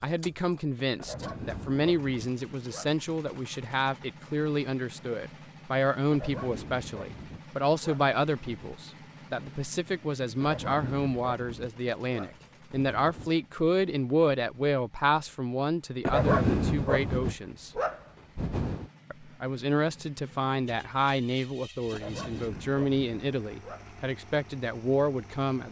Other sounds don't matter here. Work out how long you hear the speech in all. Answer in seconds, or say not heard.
24 s.